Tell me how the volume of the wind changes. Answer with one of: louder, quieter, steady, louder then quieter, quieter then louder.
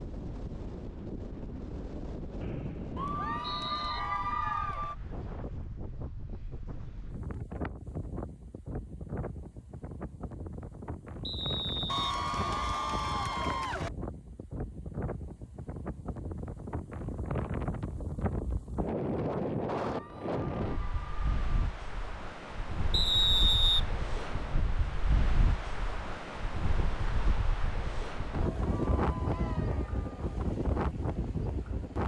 louder.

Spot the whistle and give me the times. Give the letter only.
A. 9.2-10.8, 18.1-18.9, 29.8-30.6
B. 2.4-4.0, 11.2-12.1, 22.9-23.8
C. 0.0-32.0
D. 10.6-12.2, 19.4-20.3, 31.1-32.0
B.